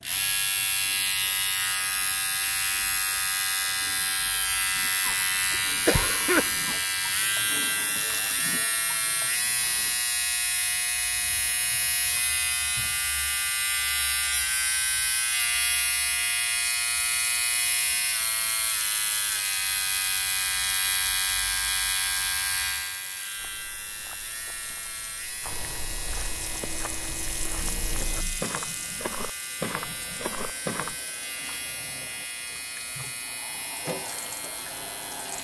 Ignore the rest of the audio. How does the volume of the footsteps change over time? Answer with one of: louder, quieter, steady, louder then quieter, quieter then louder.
louder.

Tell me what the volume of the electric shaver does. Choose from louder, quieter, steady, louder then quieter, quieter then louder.
quieter.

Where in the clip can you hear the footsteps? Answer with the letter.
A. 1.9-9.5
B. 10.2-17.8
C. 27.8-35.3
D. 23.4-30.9
D.